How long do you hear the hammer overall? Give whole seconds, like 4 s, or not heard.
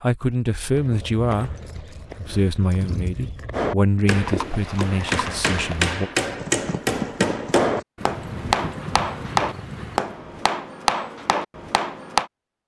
9 s.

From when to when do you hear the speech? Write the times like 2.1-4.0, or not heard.
0.0-1.6, 2.1-6.1.